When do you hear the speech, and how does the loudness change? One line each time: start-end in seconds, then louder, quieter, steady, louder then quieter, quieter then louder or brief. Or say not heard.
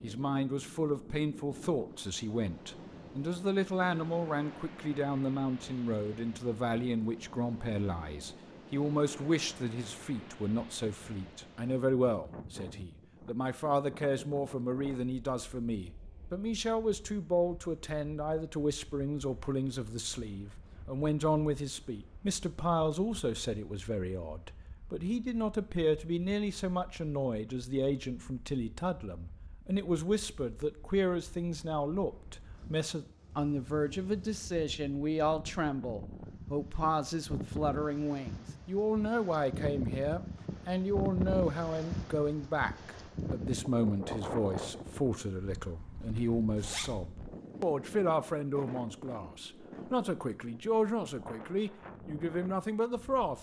0.0-53.3 steady.